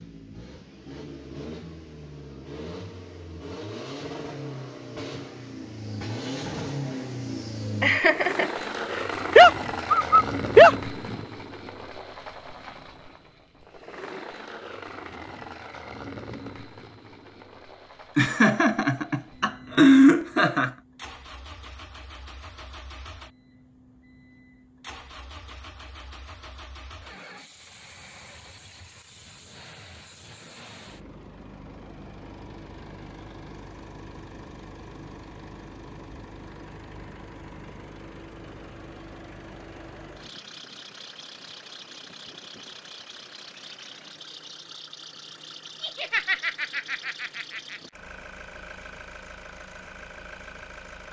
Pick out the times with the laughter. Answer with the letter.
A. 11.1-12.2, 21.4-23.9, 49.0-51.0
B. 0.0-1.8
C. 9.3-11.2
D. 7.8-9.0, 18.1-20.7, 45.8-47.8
D.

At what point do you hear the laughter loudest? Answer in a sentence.
The loudest moment of the laughter is at 20 seconds.